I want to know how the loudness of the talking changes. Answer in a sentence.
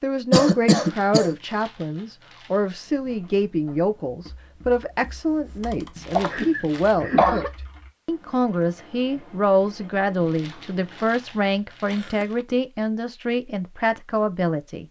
The volume of the talking stays about the same.